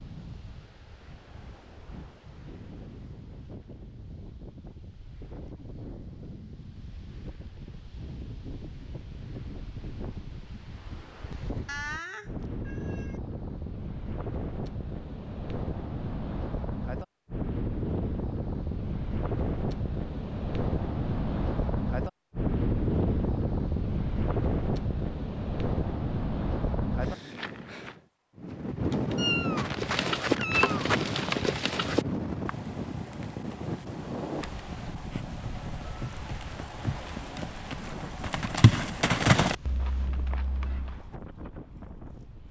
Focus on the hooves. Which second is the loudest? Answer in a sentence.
The loudest moment of the hooves is at 39 seconds.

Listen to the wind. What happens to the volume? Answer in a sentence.
The loudness of the wind goes up, then down.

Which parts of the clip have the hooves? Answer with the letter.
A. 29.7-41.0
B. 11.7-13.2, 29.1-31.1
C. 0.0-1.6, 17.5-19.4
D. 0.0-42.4
A.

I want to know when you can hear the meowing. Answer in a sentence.
You can hear the meowing from 11.7 to 13.2 s and from 29.1 to 31.1 s.